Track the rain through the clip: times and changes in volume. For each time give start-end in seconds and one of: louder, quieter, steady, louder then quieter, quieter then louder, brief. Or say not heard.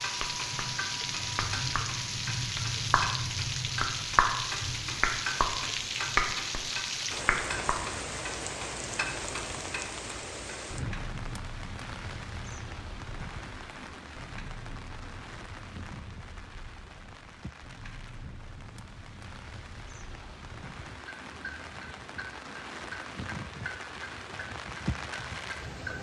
0.0-25.9 quieter then louder.